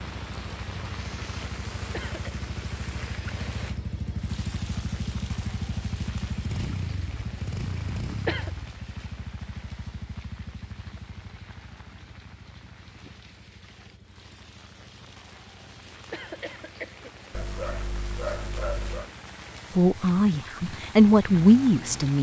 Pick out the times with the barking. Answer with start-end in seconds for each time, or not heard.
17.3-19.1.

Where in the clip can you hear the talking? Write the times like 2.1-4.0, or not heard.
19.8-22.1.